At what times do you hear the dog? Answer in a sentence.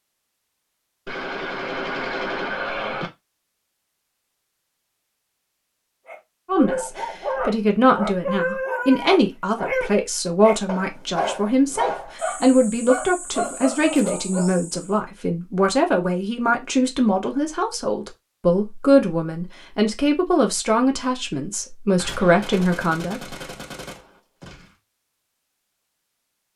The dog can be heard from 6.0 to 14.9 s.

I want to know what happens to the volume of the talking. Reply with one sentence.
The volume of the talking stays about the same.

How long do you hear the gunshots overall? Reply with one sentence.
The gunshots can be heard for 5 seconds in total.